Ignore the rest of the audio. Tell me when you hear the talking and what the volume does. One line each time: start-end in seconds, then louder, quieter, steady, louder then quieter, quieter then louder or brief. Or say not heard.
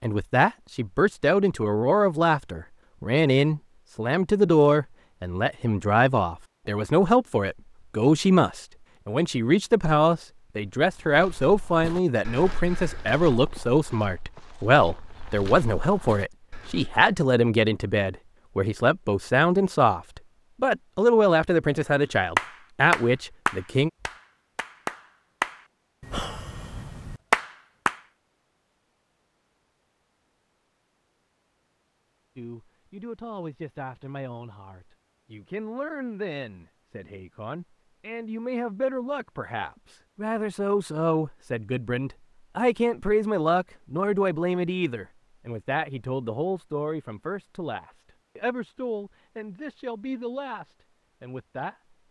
0.0-23.9 steady
32.4-52.0 louder then quieter.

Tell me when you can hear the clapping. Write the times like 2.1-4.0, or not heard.
22.4-27.9.